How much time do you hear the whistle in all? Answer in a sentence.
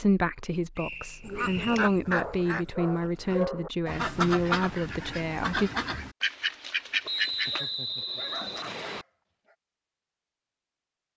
You can hear the whistle for 3 seconds altogether.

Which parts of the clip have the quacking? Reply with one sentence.
The quacking can be heard from 1.2 to 7.6 s.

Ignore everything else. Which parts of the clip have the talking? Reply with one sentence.
You can hear the talking from 0.0 to 5.7 s.